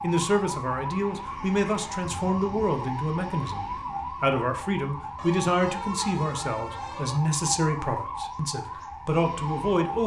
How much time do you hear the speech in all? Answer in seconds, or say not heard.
10 s.